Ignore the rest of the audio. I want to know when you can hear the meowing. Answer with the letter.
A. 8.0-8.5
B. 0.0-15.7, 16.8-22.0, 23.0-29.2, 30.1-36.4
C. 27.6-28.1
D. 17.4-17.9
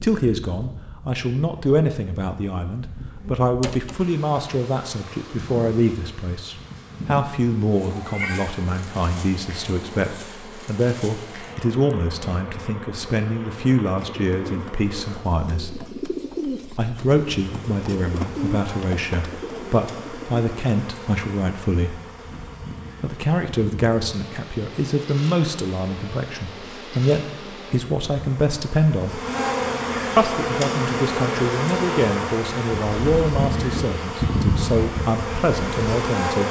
A.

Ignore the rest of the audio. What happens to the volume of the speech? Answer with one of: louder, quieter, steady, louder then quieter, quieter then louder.
steady.